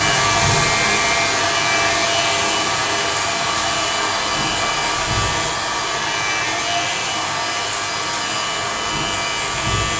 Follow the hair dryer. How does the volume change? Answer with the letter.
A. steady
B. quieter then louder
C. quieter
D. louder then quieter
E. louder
C.